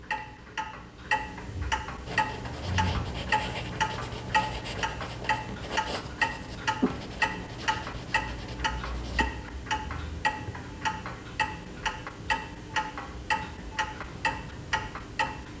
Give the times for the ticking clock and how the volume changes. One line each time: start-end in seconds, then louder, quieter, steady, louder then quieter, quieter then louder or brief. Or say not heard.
0.0-15.5 steady.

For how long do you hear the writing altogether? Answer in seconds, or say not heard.
7 s.